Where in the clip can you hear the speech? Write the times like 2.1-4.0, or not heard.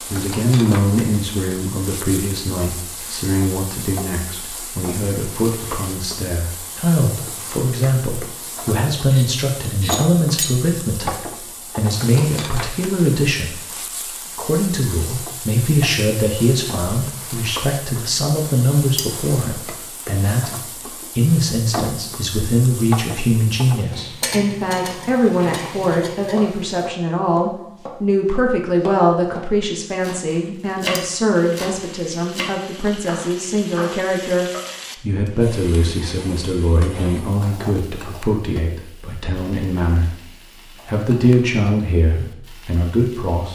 0.0-13.6, 14.3-43.5.